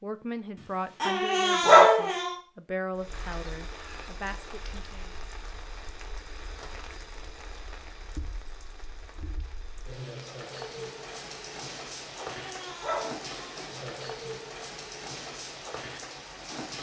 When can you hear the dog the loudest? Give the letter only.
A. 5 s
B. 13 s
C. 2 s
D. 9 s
C.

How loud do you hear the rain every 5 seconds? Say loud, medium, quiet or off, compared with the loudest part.
medium, medium, loud, loud.